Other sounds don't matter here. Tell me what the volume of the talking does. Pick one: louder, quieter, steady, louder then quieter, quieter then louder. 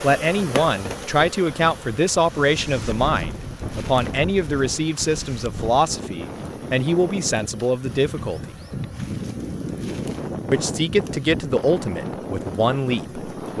steady.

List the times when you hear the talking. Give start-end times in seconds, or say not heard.
0.0-8.5, 10.5-13.5.